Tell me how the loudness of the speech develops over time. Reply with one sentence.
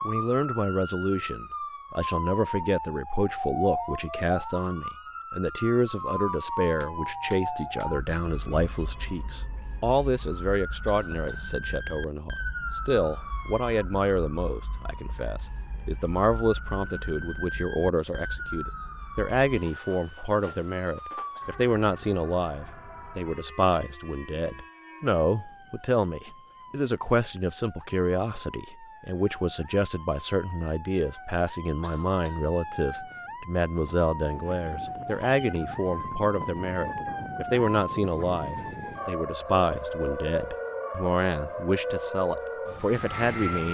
The volume of the speech stays about the same.